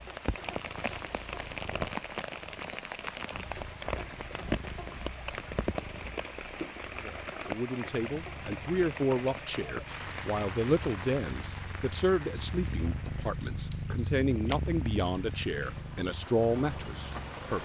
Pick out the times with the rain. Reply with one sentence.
The rain can be heard from 0.0 to 17.6 s.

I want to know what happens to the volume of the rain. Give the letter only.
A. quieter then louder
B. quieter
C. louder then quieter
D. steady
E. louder
B.